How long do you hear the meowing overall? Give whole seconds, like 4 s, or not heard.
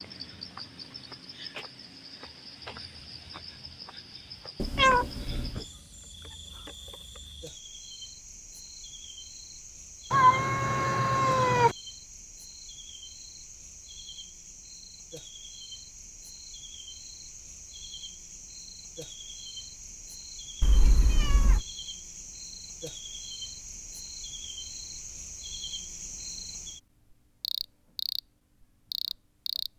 4 s.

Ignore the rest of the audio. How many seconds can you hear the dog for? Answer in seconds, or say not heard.
not heard.